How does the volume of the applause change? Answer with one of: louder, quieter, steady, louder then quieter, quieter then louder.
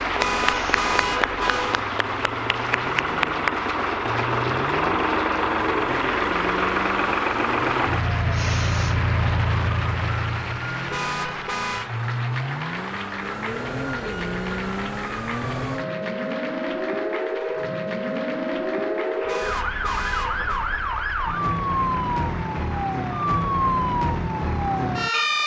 quieter.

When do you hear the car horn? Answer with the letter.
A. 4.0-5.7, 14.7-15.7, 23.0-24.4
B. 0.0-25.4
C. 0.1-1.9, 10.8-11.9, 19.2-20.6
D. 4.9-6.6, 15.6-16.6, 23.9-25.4
C.